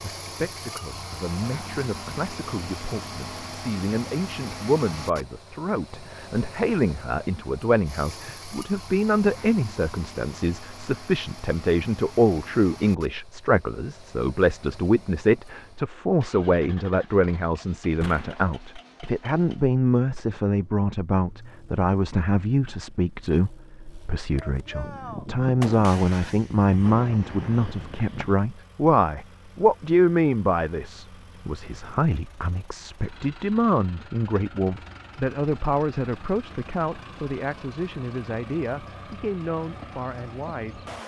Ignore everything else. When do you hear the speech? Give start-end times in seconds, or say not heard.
0.0-40.9.